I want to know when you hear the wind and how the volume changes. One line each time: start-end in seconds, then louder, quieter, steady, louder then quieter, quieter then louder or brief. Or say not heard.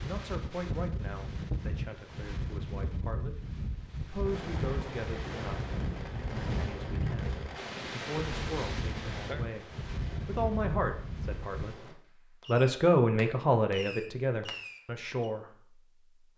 0.0-11.8 steady.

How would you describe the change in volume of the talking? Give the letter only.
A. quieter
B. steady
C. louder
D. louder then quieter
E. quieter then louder
C.